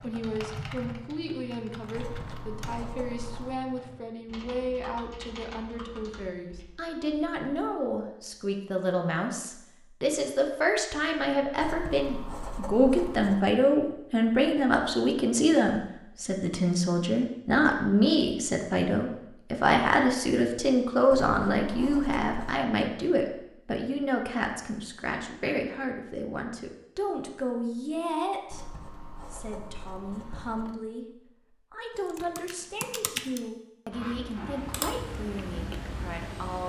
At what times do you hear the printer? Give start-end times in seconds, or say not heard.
not heard.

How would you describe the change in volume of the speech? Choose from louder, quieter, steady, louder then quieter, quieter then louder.
louder then quieter.